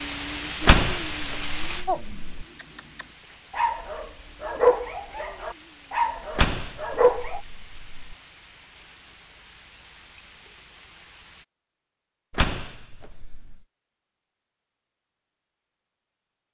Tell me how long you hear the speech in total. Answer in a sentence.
You can't hear the speech here.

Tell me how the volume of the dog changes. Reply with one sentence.
The loudness of the dog goes up, then down.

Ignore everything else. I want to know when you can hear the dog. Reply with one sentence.
The dog can be heard from 1.9 to 7.4 s.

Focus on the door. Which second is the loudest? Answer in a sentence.
The loudest moment of the door is at 1 second.